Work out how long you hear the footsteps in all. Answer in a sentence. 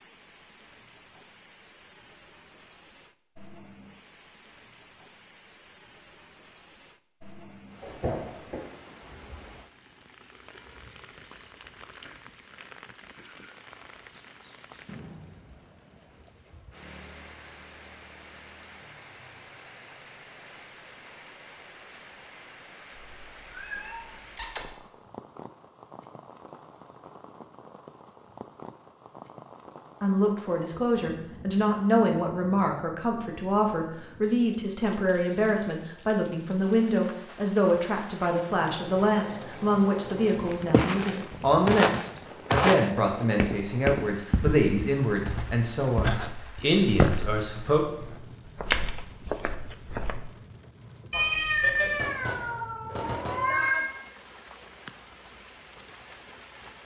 The footsteps can be heard for 10 seconds in total.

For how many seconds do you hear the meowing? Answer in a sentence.
You can hear the meowing for 5 seconds altogether.